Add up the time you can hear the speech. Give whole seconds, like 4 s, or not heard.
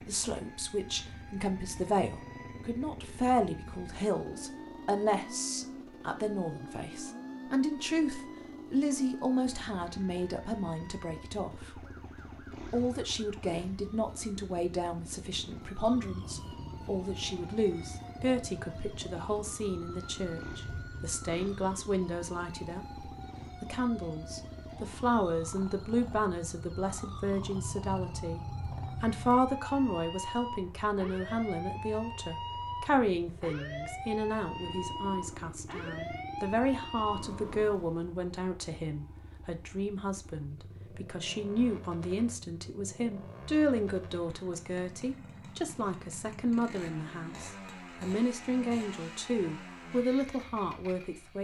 50 s.